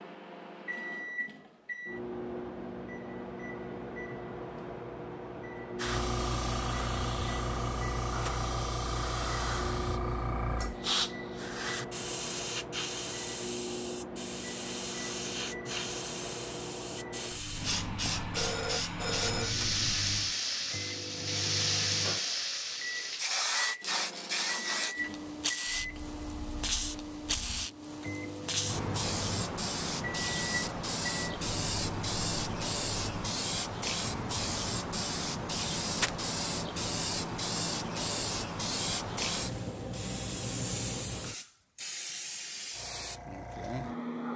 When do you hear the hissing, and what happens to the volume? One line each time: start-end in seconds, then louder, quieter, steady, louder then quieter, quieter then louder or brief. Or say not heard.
5.8-44.3 steady.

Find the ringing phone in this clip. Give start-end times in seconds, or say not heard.
18.3-20.4.